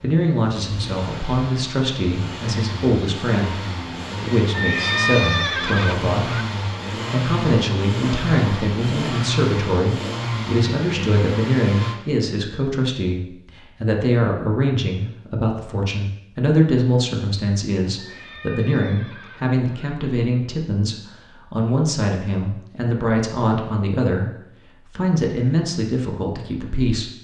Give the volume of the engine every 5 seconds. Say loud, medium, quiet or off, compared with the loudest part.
medium, loud, loud, off, off, off.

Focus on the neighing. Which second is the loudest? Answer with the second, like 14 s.
5 s.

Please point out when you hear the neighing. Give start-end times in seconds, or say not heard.
4.5-6.5, 17.9-19.6.